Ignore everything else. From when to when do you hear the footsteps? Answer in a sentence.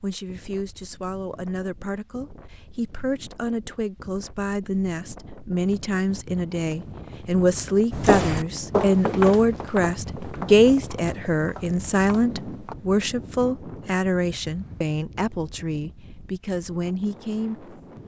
You can hear the footsteps from 7.9 to 12.8 s.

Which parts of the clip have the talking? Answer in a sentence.
You can hear the talking from 0.0 to 17.6 s.